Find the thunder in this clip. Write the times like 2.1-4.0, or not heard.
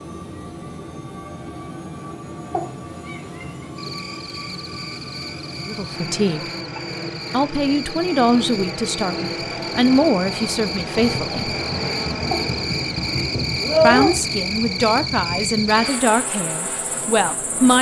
not heard.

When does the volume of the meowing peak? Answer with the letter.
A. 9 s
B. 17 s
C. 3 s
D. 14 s
D.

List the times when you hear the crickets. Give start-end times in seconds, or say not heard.
3.8-17.7.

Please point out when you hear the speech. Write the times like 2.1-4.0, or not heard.
5.7-6.5, 7.3-11.6, 13.8-17.7.